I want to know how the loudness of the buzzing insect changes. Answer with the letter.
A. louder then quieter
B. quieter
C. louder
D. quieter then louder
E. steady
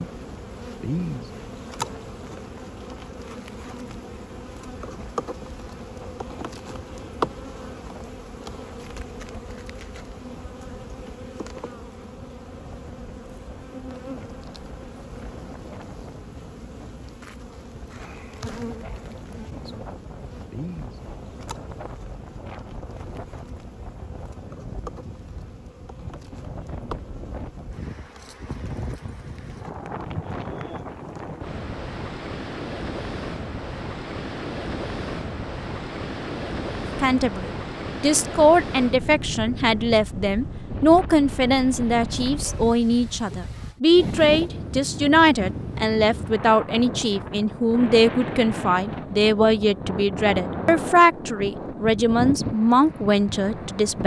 B.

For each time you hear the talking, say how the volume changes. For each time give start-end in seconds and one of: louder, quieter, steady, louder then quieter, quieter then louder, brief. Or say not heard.
37.0-54.0 steady.